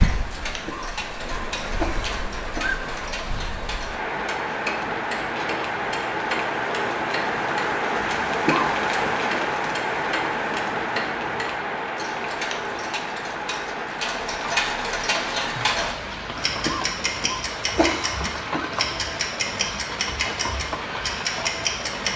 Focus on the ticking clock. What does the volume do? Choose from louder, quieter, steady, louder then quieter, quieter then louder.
louder.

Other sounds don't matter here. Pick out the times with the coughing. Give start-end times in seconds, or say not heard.
0.7-2.8, 8.4-9.2, 16.6-18.6.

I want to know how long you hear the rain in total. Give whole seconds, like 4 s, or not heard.
22 s.